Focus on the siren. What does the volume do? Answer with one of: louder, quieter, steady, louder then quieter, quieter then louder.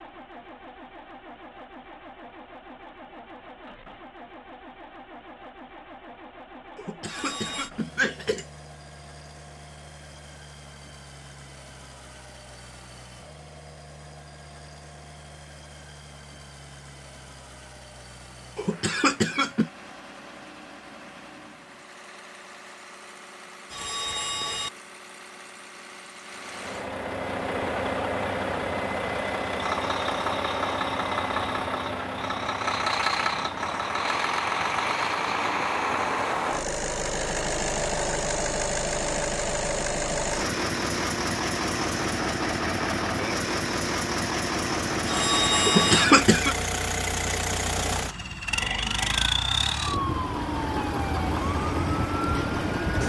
steady.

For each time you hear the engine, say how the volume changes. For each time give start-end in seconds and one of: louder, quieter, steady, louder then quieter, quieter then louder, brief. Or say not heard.
0.0-53.0 louder.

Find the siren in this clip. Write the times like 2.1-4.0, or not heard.
48.5-53.0.